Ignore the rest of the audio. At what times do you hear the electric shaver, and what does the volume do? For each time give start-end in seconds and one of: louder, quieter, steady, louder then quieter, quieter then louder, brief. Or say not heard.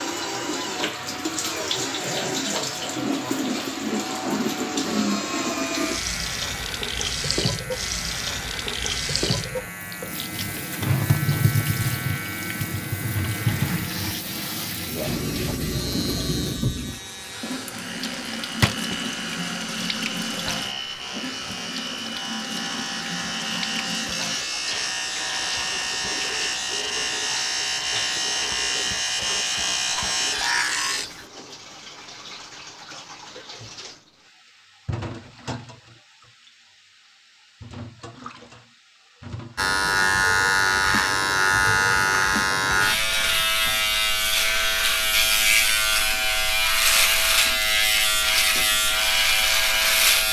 5.7-31.2 louder
39.5-50.2 steady.